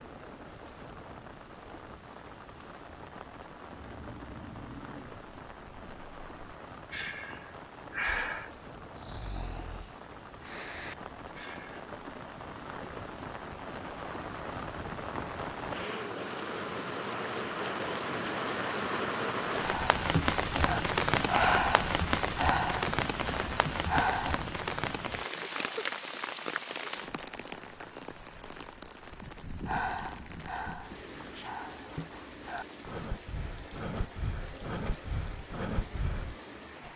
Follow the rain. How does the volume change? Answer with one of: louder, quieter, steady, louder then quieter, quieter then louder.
louder then quieter.